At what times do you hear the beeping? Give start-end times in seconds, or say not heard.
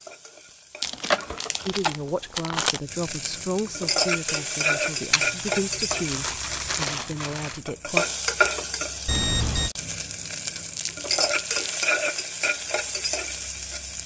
9.1-9.7.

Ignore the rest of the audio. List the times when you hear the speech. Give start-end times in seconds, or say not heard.
1.6-8.1.